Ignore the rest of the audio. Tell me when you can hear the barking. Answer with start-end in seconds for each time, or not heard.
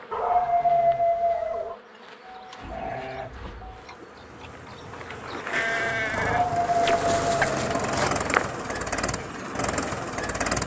0.1-1.8, 6.2-8.1.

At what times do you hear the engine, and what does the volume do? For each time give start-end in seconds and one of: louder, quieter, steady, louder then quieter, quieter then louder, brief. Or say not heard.
2.3-10.6 louder.